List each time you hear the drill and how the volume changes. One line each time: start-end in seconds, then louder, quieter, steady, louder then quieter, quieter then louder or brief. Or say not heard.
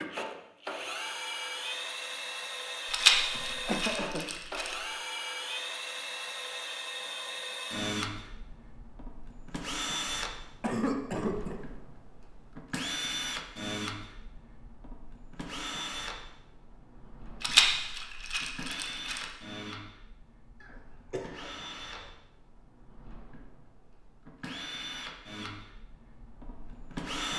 0.0-27.3 quieter.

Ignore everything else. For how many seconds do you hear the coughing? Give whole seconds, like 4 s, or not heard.
4 s.